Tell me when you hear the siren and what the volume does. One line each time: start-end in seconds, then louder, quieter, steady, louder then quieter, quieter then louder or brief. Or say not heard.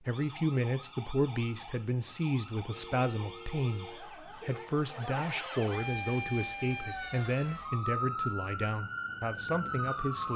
0.0-10.3 louder.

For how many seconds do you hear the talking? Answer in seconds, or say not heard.
10 s.